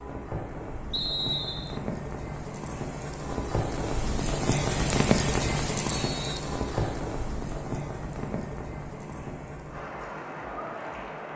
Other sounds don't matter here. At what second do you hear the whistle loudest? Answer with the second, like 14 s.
1 s.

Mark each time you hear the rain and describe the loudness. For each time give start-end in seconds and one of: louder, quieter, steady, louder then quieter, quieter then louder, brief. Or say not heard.
0.0-11.3 louder then quieter.